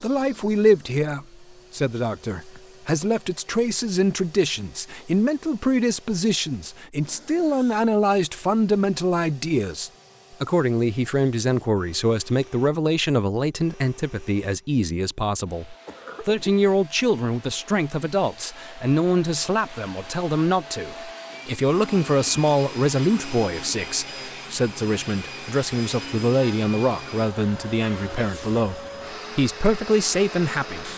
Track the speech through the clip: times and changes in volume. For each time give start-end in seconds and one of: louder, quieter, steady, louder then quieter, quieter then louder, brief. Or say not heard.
0.0-30.9 steady.